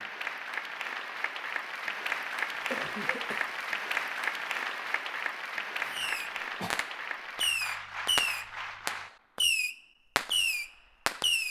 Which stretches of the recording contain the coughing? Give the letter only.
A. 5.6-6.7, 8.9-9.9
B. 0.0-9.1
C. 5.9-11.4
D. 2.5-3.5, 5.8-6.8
D.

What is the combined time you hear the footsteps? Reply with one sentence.
The footsteps can't be heard in this clip.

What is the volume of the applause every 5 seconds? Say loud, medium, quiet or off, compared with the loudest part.
loud, loud, off.